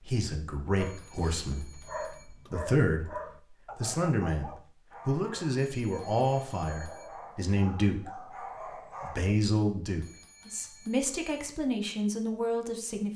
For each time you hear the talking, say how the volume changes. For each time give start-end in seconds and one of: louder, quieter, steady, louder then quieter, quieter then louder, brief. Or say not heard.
0.0-13.1 steady.